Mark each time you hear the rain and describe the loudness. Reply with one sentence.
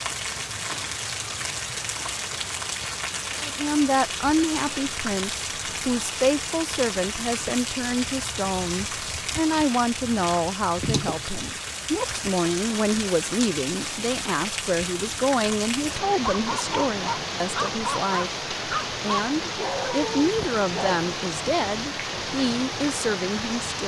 You can hear the rain from 0.0 to 23.8 s, at a steady volume.